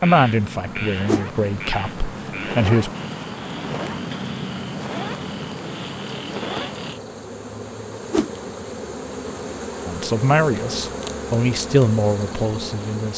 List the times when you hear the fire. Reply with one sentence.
The fire can be heard from 0.1 to 7.0 s.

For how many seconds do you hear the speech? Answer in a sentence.
You can hear the speech for 6 seconds altogether.